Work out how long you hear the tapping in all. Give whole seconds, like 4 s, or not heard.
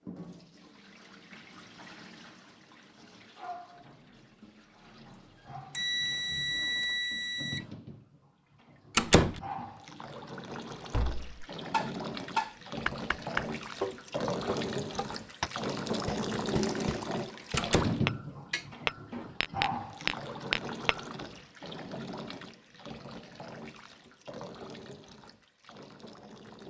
10 s.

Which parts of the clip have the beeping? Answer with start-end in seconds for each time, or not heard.
5.7-7.7.